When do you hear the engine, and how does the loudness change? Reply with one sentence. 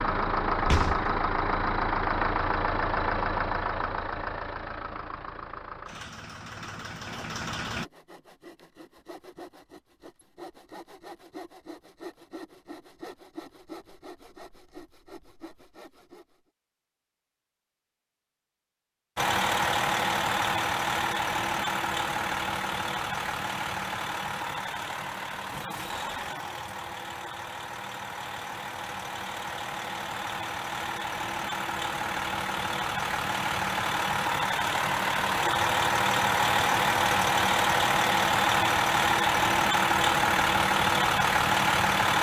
The engine can be heard from 0.0 to 7.8 s, getting quieter; and from 19.1 to 42.1 s, getting quieter then louder.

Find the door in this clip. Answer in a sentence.
The door can be heard from 0.6 to 1.1 s.